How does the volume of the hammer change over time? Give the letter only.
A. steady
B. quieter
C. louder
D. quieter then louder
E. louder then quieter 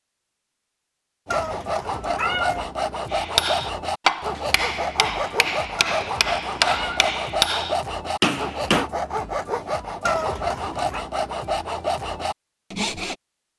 D.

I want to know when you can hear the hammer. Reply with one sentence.
You can hear the hammer from 3.1 to 8.9 s.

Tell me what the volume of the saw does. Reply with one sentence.
The volume of the saw stays about the same.